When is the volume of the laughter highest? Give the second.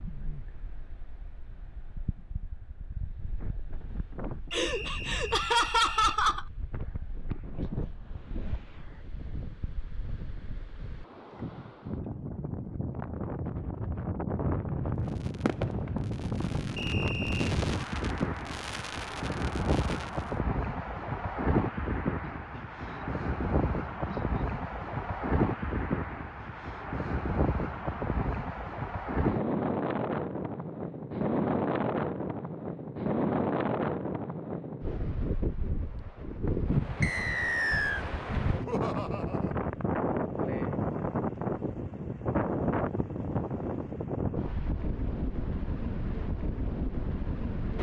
6 s.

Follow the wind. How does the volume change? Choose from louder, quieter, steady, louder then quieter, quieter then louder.
louder.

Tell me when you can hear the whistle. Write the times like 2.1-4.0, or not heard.
4.5-6.2, 16.8-17.5, 37.0-38.0.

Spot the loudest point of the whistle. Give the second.
38 s.